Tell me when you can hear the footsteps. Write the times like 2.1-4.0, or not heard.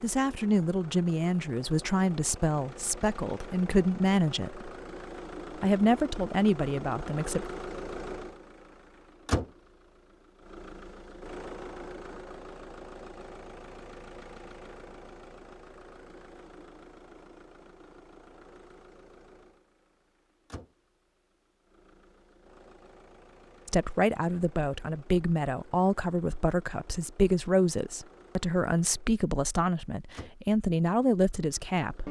not heard.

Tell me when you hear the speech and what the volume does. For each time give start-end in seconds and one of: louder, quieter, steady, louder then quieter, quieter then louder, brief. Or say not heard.
0.0-4.7 quieter then louder
5.5-7.5 brief
23.6-32.0 steady.